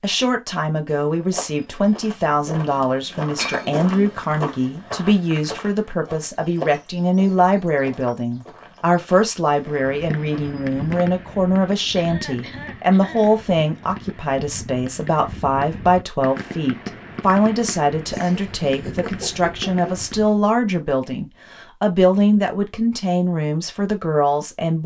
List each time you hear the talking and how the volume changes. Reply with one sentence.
You can hear the talking from 0.0 to 24.8 s, at a steady volume.